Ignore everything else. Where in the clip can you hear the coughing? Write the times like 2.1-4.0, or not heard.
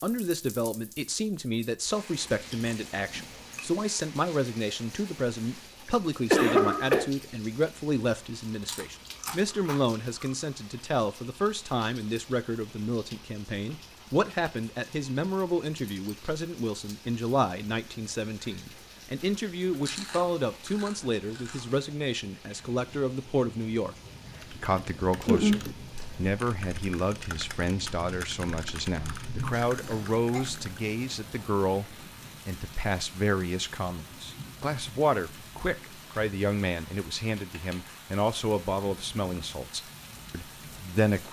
5.8-7.1, 29.7-30.4.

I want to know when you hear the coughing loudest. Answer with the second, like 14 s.
6 s.